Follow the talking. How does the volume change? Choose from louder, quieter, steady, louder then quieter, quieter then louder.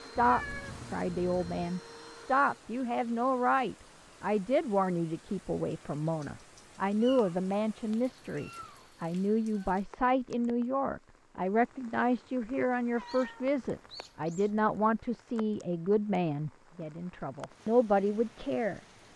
steady.